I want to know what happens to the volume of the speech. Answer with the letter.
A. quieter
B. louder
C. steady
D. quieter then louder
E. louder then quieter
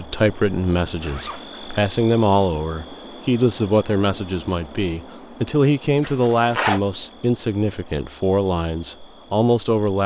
C.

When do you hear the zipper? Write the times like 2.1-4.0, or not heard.
1.0-1.9, 6.0-6.8.